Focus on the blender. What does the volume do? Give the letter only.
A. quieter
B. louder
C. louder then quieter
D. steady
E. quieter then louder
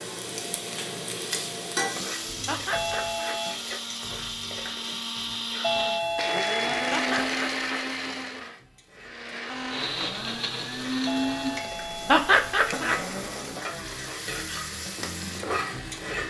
C.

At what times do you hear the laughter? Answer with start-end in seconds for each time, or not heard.
2.5-3.4, 6.9-7.7, 12.1-13.0.